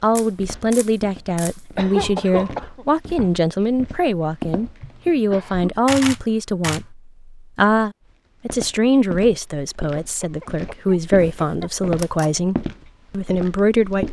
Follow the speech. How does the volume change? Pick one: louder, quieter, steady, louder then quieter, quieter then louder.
steady.